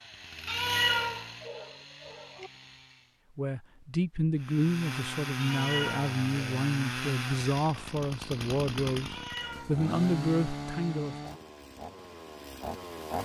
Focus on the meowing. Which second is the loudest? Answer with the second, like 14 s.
1 s.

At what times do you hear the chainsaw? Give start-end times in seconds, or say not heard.
0.0-3.2, 4.3-13.2.